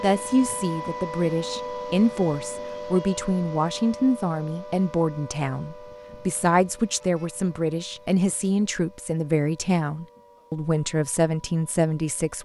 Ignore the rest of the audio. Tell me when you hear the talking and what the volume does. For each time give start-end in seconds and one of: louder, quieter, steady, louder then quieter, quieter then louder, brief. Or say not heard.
0.0-12.4 steady.